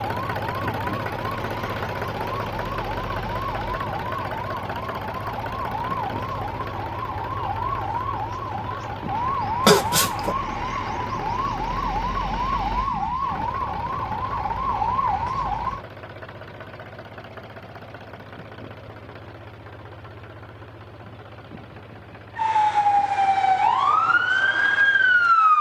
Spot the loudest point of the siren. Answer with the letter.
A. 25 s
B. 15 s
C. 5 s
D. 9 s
A.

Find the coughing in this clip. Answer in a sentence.
The coughing can be heard from 9.7 to 10.3 s.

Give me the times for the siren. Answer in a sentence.
You can hear the siren from 0.0 to 15.8 s and from 22.4 to 25.5 s.